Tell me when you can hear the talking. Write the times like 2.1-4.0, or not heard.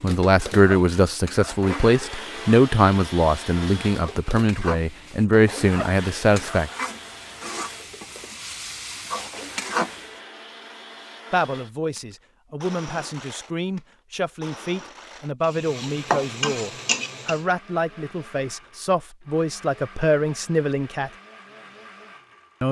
0.0-6.7, 11.3-21.1.